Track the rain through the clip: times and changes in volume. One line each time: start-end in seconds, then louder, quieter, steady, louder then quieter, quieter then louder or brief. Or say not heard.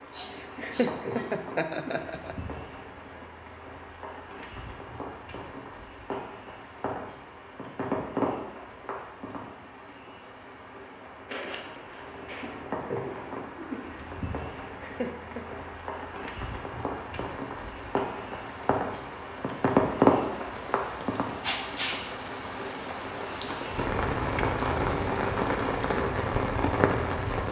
0.0-27.4 louder.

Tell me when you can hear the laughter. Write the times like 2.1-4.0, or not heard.
0.4-2.4, 14.6-15.6.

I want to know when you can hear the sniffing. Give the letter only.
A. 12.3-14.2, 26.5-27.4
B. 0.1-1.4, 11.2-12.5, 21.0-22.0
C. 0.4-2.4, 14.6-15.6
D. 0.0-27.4
B.